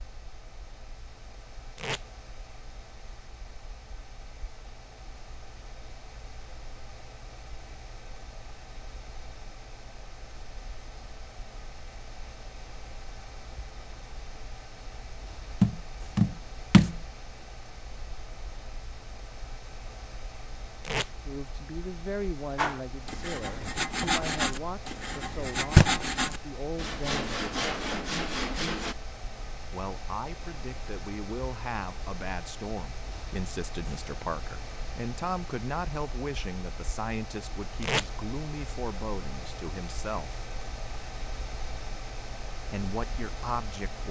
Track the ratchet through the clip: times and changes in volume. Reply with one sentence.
The ratchet can't be heard in this clip.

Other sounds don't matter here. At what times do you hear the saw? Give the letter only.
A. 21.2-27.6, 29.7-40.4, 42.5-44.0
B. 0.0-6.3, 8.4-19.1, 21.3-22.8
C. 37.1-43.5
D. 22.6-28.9
D.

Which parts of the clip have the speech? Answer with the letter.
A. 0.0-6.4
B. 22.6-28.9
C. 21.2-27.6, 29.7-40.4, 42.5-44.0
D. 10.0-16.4
C.